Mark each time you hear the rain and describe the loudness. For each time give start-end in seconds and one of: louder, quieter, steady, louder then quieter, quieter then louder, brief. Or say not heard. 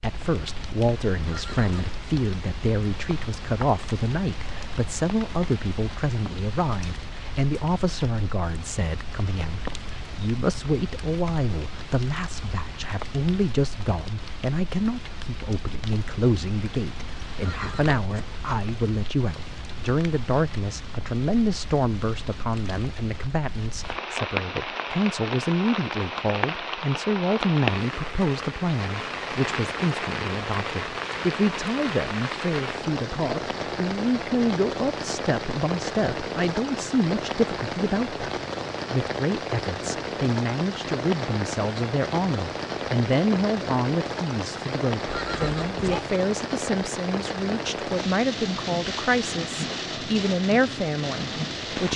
0.0-51.9 louder.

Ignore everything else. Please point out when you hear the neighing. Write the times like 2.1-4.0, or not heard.
1.2-2.0, 17.4-18.2, 45.0-46.0.